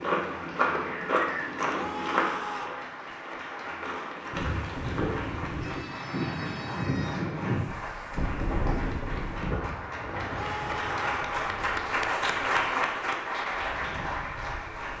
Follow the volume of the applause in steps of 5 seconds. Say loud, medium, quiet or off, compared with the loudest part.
medium, medium, loud.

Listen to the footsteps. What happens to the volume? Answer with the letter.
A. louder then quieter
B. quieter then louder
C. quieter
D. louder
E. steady
B.